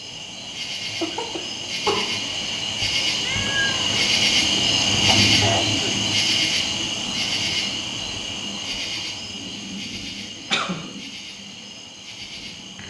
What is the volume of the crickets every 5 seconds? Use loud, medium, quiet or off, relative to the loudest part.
loud, loud, quiet.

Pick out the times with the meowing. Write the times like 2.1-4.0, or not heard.
3.2-4.0.